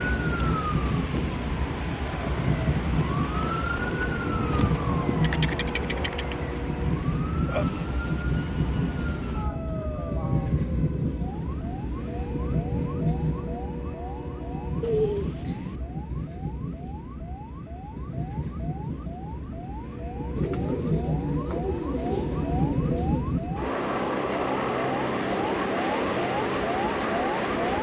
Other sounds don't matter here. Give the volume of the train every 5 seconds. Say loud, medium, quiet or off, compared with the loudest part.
loud, loud, loud, medium, loud, loud.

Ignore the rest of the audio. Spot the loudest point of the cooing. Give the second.
15 s.